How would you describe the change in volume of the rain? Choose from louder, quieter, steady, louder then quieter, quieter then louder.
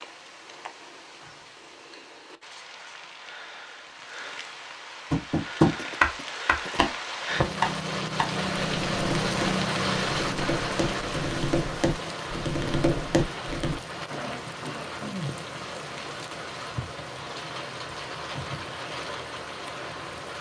louder then quieter.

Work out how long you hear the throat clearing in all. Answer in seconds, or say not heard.
3 s.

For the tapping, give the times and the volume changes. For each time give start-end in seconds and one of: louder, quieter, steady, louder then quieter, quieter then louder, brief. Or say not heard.
5.1-13.8 quieter then louder.